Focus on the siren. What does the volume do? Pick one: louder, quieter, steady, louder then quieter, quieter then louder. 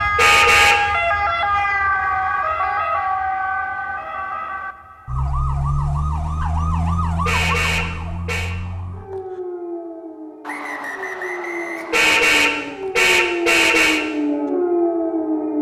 quieter then louder.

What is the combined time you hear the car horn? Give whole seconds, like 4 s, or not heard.
4 s.